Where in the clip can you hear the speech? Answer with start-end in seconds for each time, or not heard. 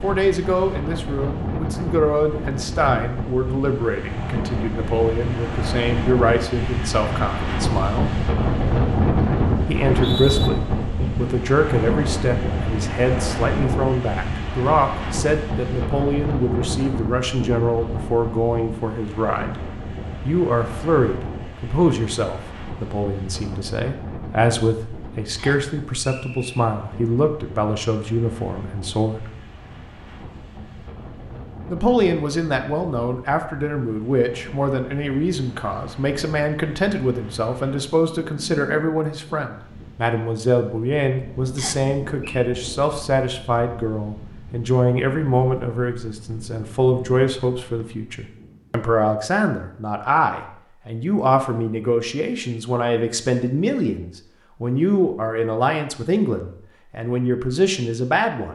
0.0-8.2, 9.7-19.6, 20.2-29.3, 31.7-58.5.